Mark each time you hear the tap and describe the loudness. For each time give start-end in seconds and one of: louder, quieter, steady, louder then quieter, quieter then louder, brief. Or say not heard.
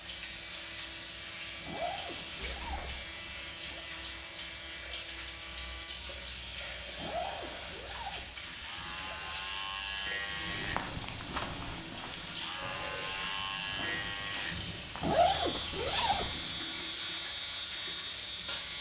0.0-18.7 steady.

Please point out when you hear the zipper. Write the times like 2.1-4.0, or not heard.
1.6-3.9, 7.0-9.4, 15.0-16.4.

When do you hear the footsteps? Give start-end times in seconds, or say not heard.
10.4-16.9.